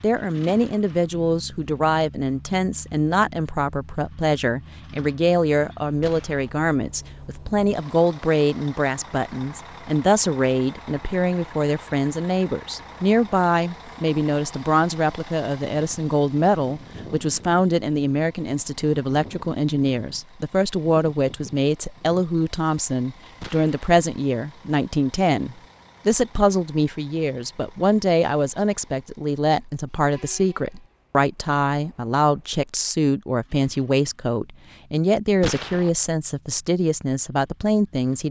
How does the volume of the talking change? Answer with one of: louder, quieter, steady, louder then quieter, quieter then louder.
steady.